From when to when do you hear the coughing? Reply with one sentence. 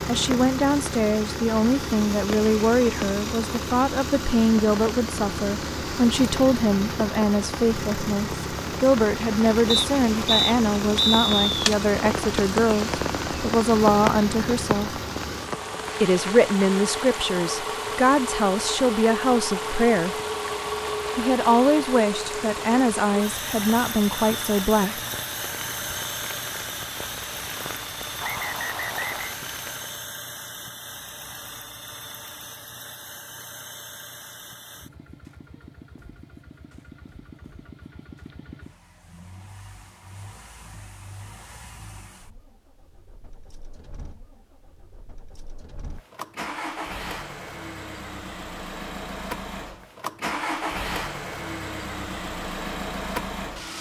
The coughing can't be heard in this clip.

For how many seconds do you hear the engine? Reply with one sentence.
You can hear the engine for 54 seconds altogether.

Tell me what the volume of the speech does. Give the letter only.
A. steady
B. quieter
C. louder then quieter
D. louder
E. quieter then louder
A.